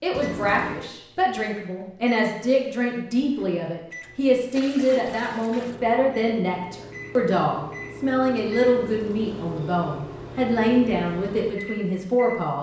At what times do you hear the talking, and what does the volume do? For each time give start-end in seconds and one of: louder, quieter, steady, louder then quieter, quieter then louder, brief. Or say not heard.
0.0-12.5 steady.